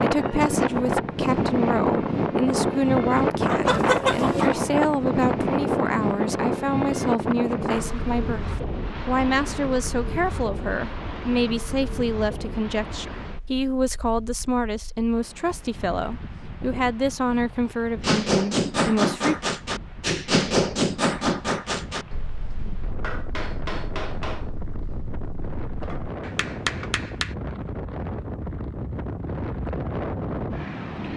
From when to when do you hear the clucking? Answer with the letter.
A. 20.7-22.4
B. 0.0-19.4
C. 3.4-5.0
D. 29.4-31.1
C.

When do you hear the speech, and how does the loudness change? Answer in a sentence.
The speech can be heard from 0.0 to 19.4 s, at a steady volume.